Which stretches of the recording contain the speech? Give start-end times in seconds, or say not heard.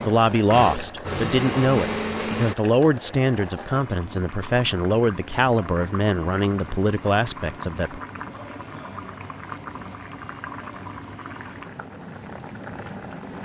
0.0-8.0.